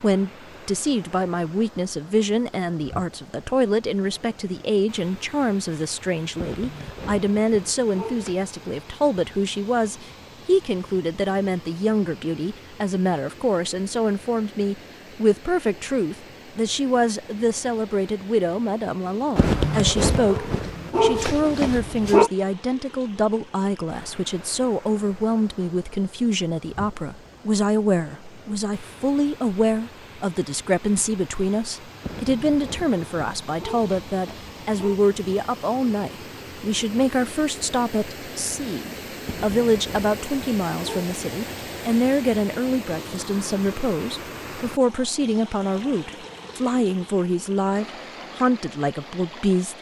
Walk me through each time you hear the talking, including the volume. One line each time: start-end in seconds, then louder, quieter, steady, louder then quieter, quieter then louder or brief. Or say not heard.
0.0-49.7 steady.